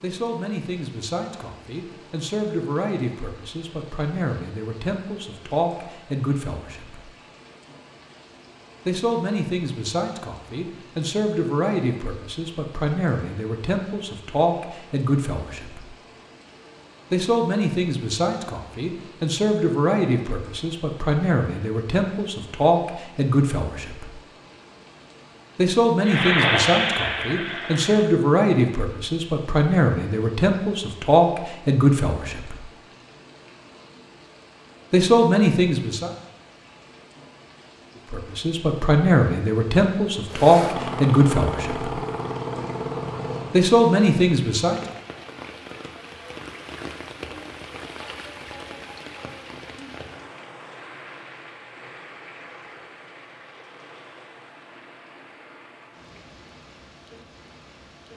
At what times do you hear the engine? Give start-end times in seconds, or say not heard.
26.0-28.1, 40.2-43.6.